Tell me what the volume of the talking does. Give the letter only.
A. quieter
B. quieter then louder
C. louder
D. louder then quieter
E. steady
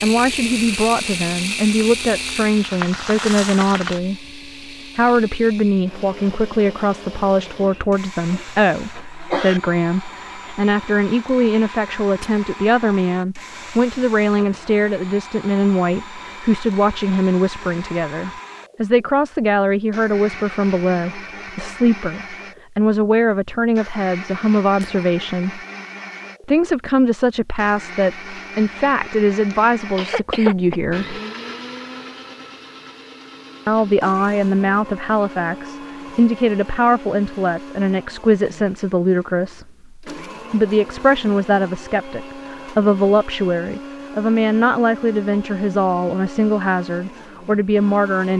E.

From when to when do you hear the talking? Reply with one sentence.
The talking can be heard from 0.0 to 25.6 s, from 26.4 to 31.2 s and from 33.6 to 48.3 s.